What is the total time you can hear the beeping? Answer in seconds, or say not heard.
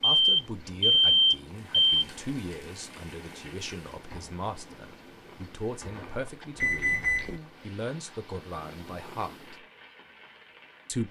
3 s.